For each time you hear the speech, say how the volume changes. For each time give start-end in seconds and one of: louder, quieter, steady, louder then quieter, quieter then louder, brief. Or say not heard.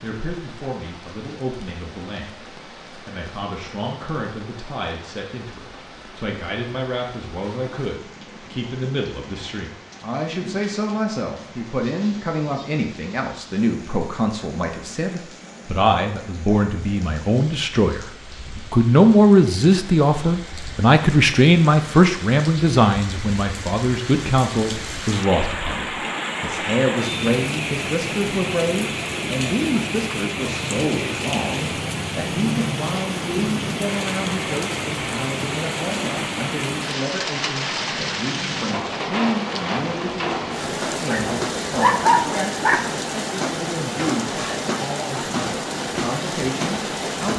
0.0-47.3 louder then quieter.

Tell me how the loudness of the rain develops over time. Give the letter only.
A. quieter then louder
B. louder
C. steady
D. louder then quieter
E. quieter
B.